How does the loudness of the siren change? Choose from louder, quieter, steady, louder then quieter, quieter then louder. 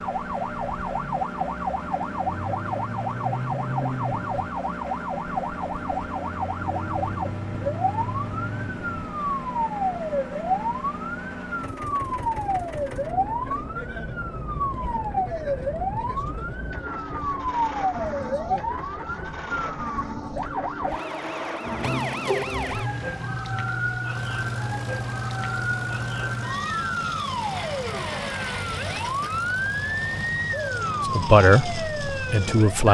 steady.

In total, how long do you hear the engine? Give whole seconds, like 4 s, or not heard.
33 s.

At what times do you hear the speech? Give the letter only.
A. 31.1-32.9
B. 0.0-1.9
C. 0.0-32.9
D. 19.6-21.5
A.